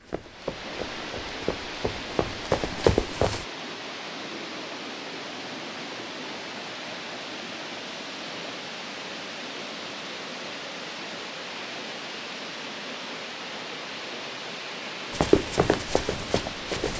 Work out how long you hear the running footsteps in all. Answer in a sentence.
The running footsteps can be heard for 5 seconds in total.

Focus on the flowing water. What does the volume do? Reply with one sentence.
The loudness of the flowing water stays about the same.